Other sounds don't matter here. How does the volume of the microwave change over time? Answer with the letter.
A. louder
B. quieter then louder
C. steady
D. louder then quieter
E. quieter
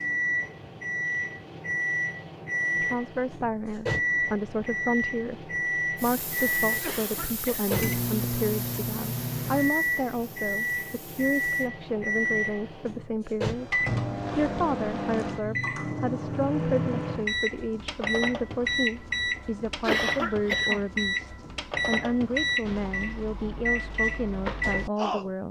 C.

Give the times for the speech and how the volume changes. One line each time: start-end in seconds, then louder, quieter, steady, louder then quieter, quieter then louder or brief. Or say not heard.
2.8-25.4 steady.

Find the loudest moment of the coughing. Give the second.
20 s.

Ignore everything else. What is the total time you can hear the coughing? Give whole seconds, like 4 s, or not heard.
2 s.